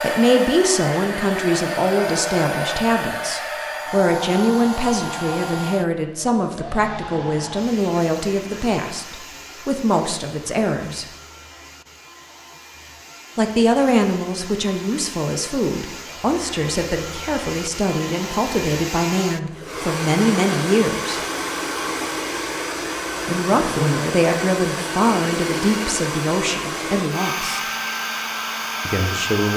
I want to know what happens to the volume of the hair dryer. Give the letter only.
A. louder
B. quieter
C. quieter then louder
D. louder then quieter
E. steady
C.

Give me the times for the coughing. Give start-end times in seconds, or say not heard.
not heard.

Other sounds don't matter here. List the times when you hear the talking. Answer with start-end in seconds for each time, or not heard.
0.0-11.1, 13.3-21.2, 23.2-27.7, 28.9-29.5.